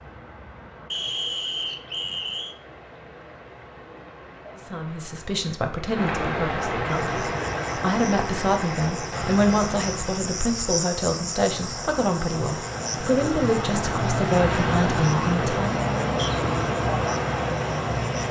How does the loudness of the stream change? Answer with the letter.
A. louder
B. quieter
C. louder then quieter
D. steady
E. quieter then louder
A.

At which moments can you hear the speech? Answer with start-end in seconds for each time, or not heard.
4.7-15.8.